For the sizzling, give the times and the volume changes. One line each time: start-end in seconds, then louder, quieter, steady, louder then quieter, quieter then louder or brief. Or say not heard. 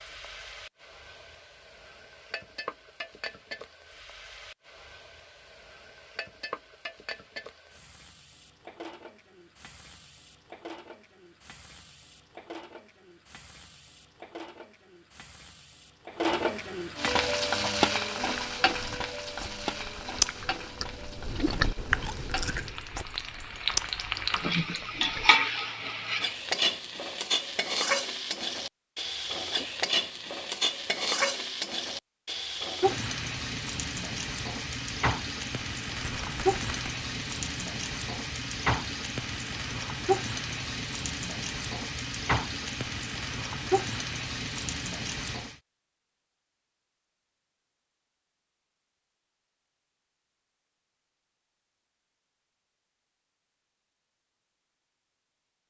0.0-45.6 louder.